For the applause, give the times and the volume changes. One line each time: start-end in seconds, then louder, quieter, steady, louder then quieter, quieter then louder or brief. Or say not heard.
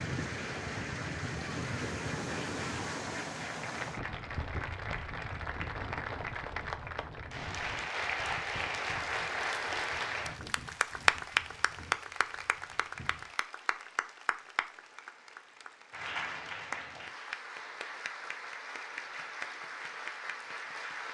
0.0-21.1 louder then quieter.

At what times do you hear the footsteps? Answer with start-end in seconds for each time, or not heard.
not heard.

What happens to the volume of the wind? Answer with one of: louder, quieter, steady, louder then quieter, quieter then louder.
quieter.